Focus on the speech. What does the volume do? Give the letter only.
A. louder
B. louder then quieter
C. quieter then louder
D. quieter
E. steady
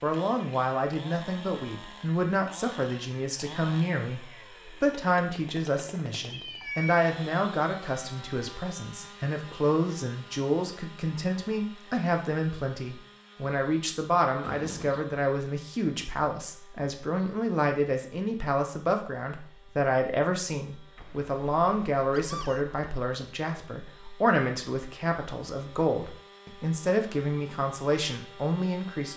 E.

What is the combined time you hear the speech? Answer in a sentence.
You can hear the speech for 29 seconds altogether.